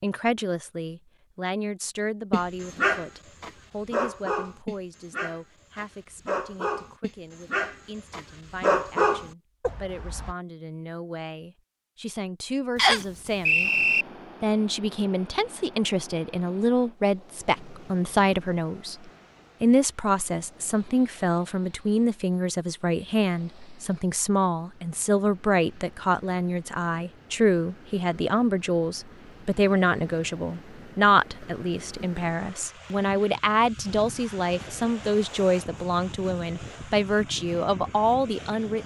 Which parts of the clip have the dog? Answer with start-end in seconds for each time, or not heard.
2.3-10.3.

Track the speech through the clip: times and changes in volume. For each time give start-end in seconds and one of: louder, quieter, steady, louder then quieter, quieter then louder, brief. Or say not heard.
0.0-13.7 quieter then louder
14.4-38.8 steady.